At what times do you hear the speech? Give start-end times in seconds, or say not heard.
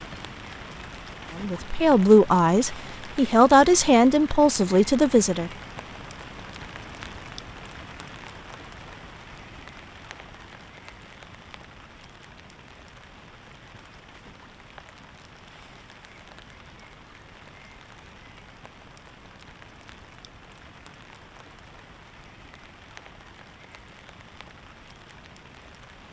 1.4-5.5.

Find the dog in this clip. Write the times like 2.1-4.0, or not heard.
not heard.